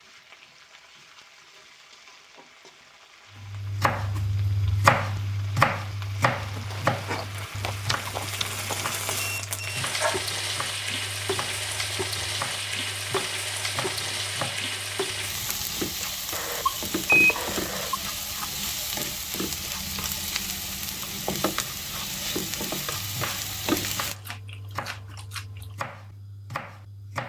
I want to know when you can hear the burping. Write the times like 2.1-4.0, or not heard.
not heard.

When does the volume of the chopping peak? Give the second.
5 s.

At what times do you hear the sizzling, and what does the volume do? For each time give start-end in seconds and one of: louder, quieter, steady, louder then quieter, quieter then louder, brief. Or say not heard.
0.0-24.1 louder.